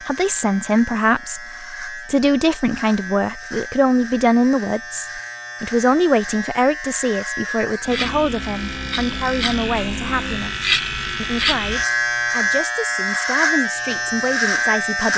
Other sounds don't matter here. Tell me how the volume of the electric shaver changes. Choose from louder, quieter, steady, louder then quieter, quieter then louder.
louder.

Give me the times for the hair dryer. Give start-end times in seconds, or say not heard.
not heard.